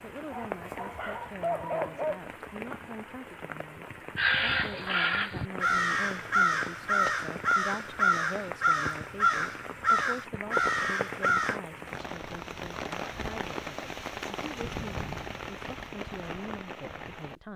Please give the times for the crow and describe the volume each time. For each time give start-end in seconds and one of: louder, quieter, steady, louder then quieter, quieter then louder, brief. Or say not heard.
4.2-11.6 steady.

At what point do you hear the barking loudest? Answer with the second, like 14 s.
2 s.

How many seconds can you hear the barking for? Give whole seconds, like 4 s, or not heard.
2 s.